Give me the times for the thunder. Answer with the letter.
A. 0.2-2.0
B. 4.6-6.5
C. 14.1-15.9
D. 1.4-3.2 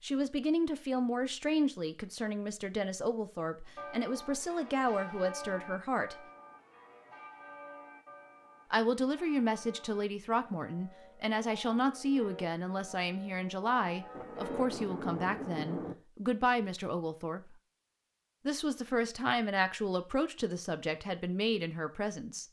C.